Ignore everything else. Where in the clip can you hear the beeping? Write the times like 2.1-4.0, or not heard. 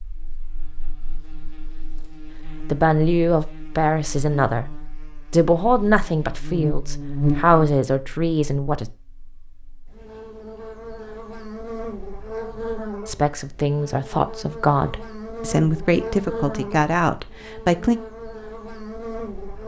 not heard.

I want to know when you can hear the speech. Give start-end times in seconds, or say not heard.
2.7-4.7, 5.3-8.8, 13.1-18.0.